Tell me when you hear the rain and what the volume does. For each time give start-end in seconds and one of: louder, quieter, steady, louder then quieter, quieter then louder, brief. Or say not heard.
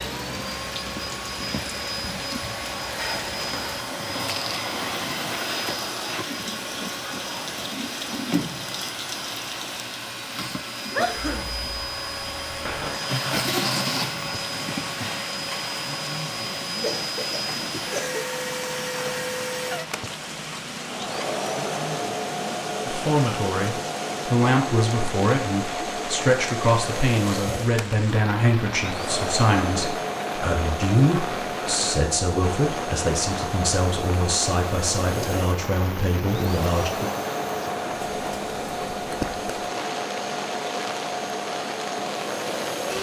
0.0-42.9 steady.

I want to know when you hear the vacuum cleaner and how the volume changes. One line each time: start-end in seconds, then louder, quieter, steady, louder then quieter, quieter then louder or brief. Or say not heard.
0.0-42.9 steady.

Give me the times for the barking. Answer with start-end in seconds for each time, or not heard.
not heard.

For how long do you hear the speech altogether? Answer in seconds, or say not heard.
14 s.